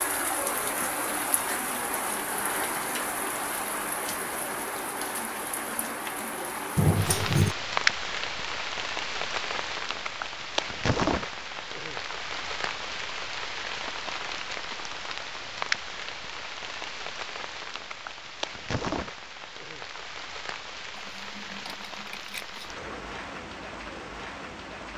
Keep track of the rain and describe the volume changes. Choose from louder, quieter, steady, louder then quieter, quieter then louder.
quieter.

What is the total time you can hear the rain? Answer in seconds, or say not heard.
25 s.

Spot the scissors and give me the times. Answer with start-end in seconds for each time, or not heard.
6.8-7.5, 20.9-22.7.